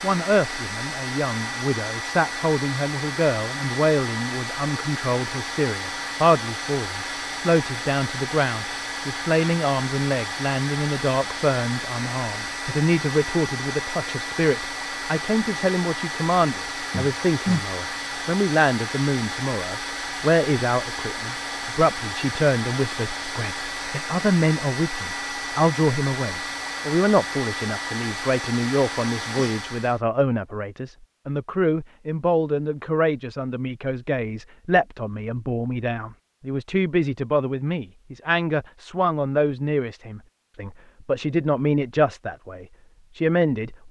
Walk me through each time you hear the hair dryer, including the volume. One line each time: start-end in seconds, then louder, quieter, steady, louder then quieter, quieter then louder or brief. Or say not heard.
0.0-30.0 steady.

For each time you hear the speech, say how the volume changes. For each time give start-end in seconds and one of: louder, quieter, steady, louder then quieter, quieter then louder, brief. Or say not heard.
0.0-43.8 steady.